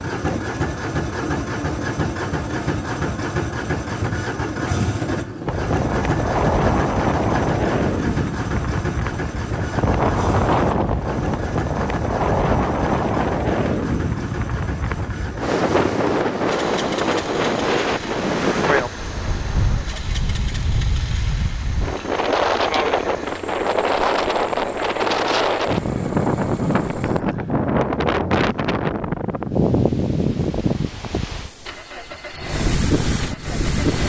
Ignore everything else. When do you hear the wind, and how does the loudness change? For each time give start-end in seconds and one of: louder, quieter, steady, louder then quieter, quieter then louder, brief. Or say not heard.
5.5-34.0 steady.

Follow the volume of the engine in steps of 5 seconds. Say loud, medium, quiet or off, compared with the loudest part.
loud, loud, medium, medium, quiet, quiet, medium.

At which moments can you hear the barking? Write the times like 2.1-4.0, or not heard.
not heard.